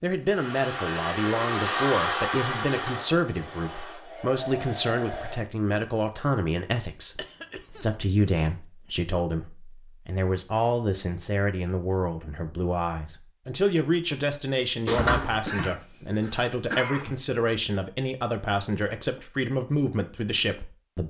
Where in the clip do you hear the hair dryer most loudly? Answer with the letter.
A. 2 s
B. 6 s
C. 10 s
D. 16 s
A.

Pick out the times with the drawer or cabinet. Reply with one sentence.
The drawer or cabinet can be heard from 14.8 to 15.7 s.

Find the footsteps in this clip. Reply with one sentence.
You can't hear the footsteps here.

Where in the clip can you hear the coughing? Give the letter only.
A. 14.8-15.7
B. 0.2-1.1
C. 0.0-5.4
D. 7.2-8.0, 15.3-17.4
D.